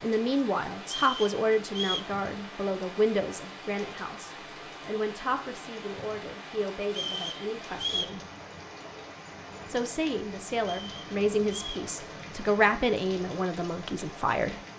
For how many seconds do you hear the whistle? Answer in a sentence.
You can hear the whistle for 4 seconds altogether.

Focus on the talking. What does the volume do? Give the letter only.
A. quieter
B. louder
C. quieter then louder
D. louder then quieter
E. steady
C.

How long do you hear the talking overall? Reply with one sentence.
You can hear the talking for 13 seconds altogether.